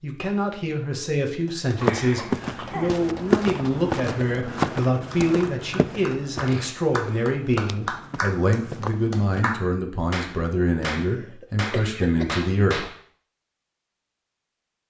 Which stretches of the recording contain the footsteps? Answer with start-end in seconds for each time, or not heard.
1.8-9.4.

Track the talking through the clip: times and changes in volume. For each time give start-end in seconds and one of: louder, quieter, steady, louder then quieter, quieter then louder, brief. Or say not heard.
0.0-12.8 steady.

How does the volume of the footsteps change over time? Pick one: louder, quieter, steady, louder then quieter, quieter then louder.
quieter.